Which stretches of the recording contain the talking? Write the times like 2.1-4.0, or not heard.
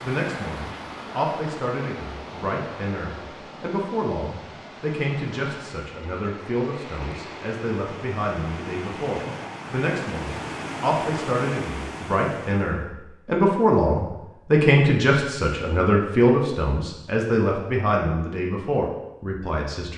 0.0-19.9.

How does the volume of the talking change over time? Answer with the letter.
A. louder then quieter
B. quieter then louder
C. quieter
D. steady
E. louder
E.